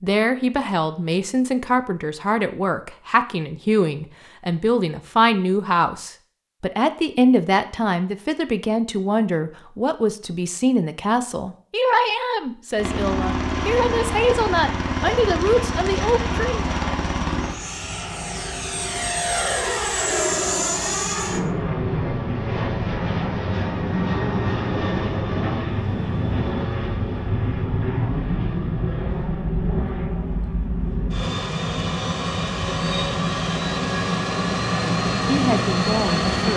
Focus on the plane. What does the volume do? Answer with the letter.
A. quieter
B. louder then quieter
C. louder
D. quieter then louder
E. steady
E.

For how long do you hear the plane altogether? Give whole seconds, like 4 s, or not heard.
24 s.